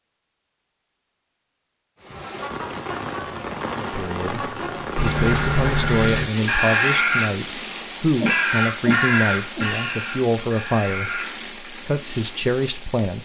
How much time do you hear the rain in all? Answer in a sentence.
You can hear the rain for 11 seconds altogether.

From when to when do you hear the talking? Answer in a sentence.
You can hear the talking from 3.8 to 13.2 s.